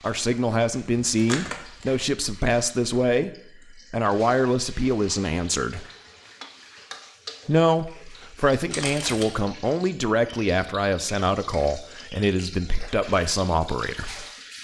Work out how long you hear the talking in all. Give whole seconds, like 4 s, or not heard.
13 s.